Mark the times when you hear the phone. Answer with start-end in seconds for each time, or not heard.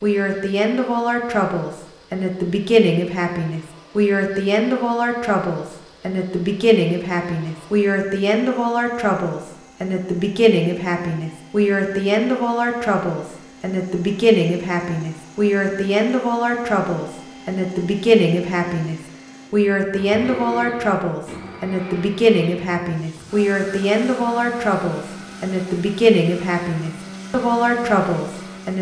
not heard.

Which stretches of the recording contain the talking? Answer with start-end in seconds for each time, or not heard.
0.0-28.7.